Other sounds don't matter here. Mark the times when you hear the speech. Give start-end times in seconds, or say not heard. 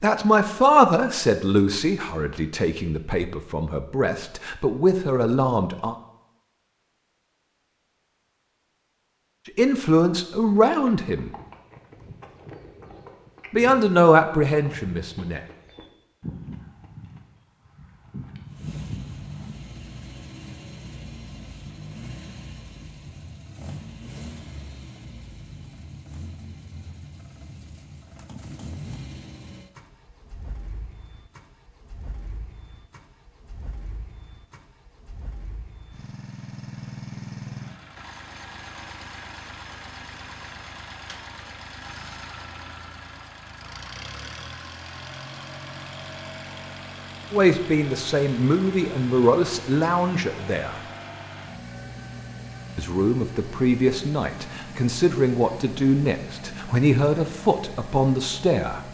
0.0-6.0, 9.6-11.3, 13.5-15.4, 47.3-50.8, 52.8-58.8.